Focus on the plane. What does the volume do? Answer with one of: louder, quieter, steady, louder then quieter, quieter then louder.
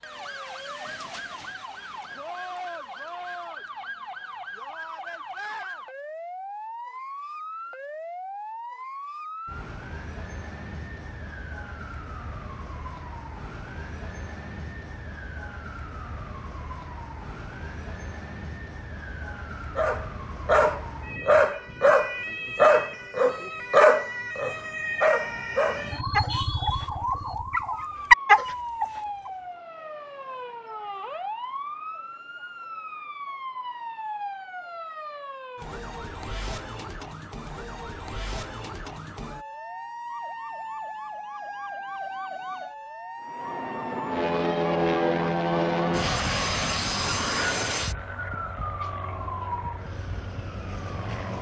quieter.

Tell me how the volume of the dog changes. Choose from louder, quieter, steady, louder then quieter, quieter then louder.
quieter then louder.